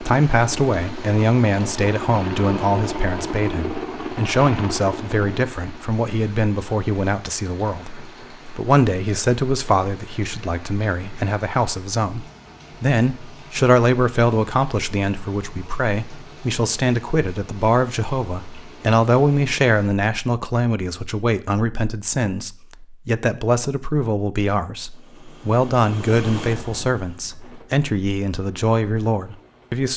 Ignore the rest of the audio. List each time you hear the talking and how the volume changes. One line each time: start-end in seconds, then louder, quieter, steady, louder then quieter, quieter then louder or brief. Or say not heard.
0.0-29.9 steady.